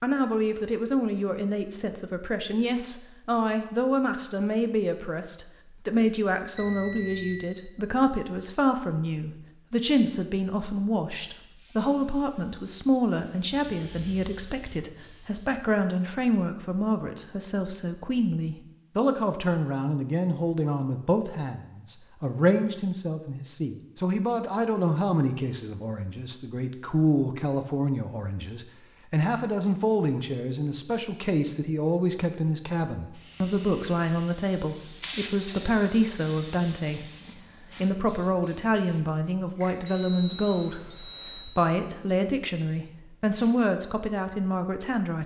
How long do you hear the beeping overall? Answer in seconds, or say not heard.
3 s.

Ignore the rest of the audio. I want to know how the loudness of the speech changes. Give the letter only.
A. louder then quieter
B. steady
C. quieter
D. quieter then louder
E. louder
B.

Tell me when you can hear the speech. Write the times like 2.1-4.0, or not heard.
0.0-45.2.